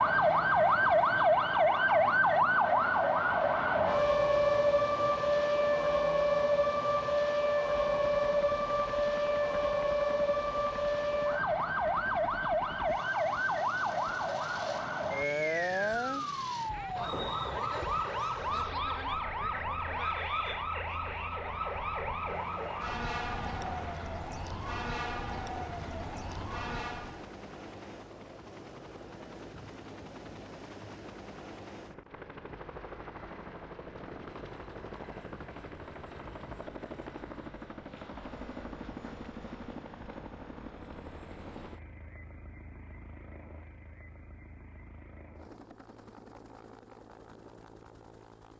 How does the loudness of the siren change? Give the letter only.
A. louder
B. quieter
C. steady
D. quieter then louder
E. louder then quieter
B.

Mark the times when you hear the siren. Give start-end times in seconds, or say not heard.
0.0-27.3.